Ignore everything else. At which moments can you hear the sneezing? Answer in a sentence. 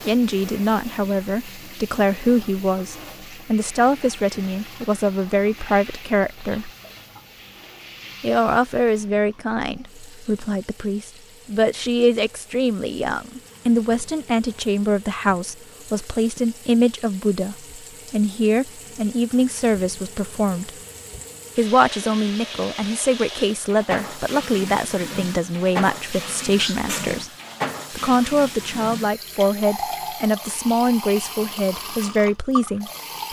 You can hear the sneezing from 26.6 to 27.3 s.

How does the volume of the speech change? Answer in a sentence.
The loudness of the speech stays about the same.